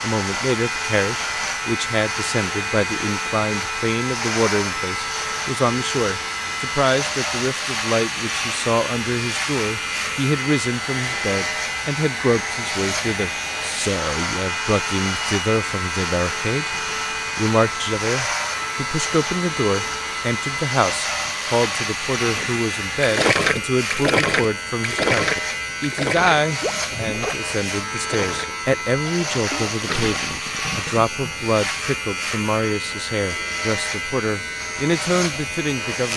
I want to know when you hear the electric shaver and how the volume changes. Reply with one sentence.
You can hear the electric shaver from 0.0 to 36.1 s, at a steady volume.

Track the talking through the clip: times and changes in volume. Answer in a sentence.
The talking can be heard from 0.0 to 16.8 s, at a steady volume; and from 17.4 to 36.1 s, at a steady volume.